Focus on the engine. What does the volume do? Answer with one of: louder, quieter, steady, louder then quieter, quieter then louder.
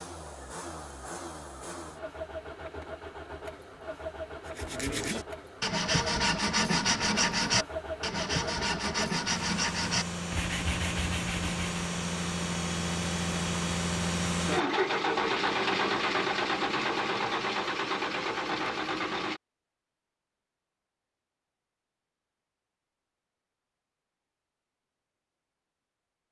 louder.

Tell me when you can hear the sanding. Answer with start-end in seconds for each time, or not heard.
4.5-11.8.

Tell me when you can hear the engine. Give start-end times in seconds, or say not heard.
0.0-19.4.